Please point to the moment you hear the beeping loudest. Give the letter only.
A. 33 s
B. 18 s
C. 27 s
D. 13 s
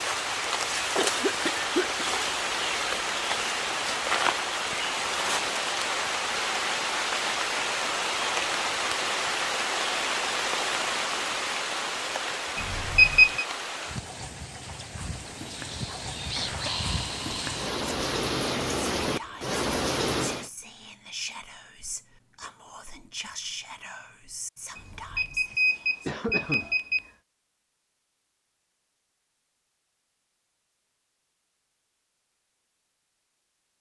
D.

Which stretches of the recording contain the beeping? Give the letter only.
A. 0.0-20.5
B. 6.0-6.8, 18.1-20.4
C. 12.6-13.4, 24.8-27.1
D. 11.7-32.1
C.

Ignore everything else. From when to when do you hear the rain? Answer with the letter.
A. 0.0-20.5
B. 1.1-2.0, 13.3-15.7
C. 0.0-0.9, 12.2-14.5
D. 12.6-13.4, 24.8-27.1
A.